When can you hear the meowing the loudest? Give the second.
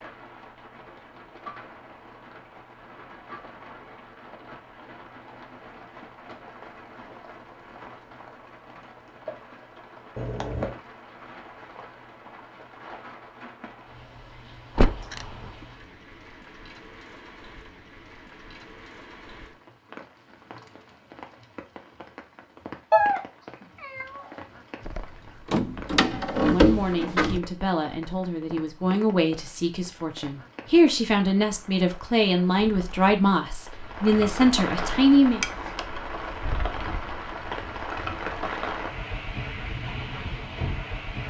23 s.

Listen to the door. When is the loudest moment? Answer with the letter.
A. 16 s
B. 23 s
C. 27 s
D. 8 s
C.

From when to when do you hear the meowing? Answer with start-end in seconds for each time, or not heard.
10.2-10.8, 22.9-24.3, 35.4-36.0.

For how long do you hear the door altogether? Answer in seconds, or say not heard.
3 s.